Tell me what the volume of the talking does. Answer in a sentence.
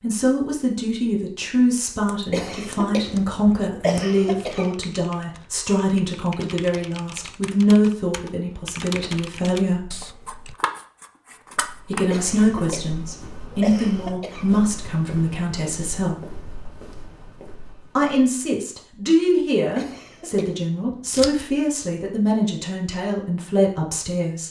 The loudness of the talking stays about the same.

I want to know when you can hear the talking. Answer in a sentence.
The talking can be heard from 0.0 to 9.9 s, from 11.9 to 16.1 s and from 17.9 to 24.4 s.